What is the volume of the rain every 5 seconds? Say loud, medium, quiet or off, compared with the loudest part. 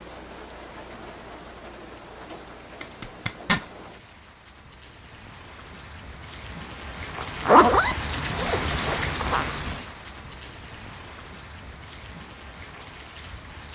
medium, loud, medium.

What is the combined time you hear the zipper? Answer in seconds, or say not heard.
3 s.